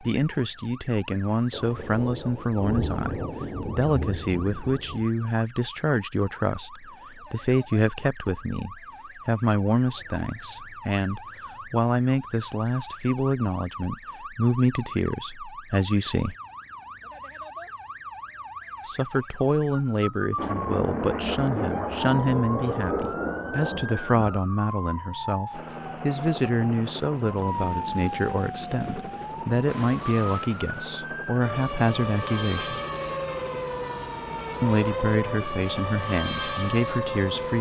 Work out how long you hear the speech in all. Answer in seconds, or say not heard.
33 s.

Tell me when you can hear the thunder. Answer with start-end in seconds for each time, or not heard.
1.5-5.0, 20.4-24.4.